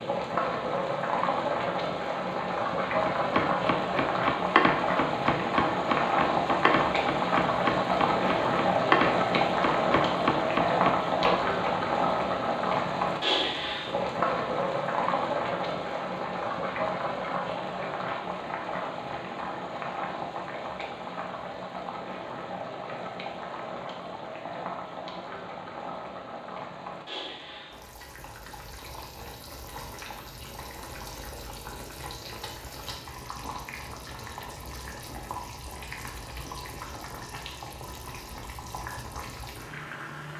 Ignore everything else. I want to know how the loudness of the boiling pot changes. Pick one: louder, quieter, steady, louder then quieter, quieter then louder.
quieter.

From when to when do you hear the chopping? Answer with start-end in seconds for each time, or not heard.
3.0-11.8.